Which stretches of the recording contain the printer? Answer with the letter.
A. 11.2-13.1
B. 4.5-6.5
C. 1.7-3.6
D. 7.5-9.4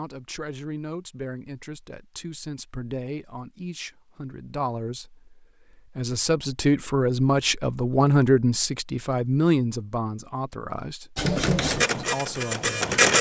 A.